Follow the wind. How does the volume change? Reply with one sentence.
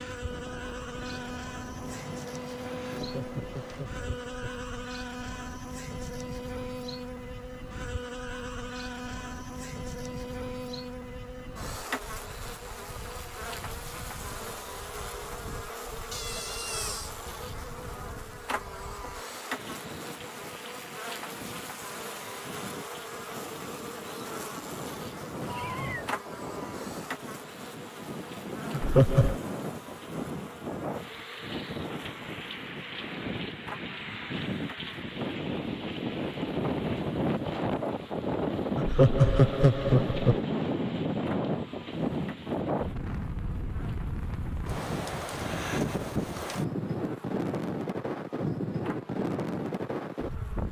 The volume of the wind goes up.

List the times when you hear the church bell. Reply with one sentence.
You can't hear the church bell here.